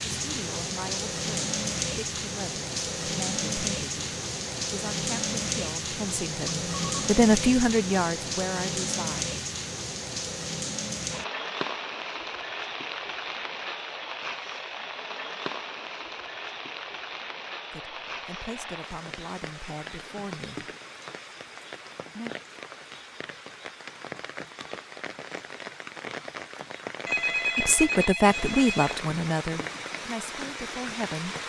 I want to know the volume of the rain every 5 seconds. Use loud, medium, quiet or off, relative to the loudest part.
loud, loud, loud, medium, medium, medium, medium.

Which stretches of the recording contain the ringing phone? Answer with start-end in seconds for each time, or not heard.
6.5-7.0, 27.1-29.0.